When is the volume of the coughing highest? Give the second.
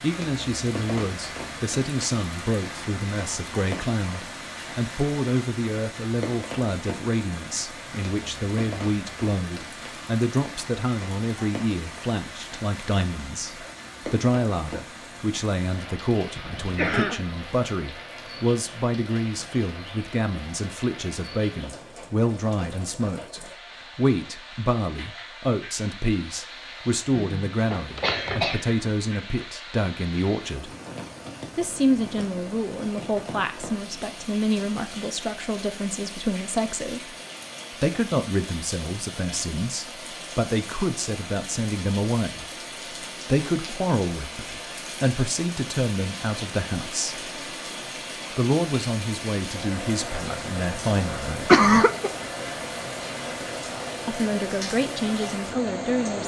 52 s.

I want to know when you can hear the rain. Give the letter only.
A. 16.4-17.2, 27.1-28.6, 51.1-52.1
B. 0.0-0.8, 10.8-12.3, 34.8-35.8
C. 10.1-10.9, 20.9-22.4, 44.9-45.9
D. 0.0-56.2
D.